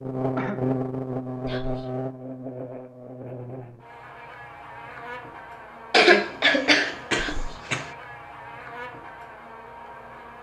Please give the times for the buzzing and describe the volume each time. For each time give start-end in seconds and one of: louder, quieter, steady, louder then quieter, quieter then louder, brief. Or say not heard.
0.0-10.3 quieter.